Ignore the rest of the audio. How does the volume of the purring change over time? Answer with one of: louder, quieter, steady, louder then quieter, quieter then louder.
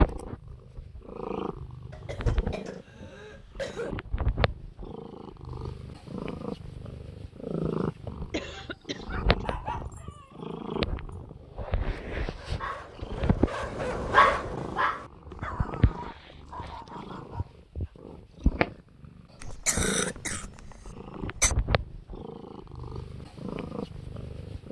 steady.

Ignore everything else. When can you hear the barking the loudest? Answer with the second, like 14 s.
14 s.